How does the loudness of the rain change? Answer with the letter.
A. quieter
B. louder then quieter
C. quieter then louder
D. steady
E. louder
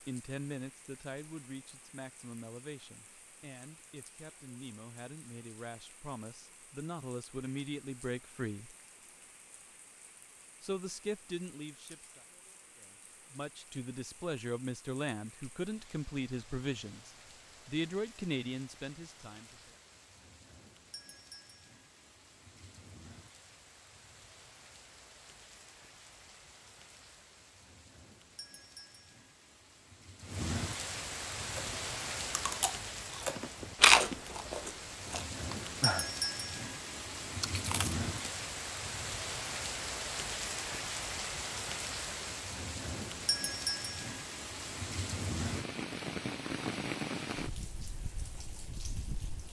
E.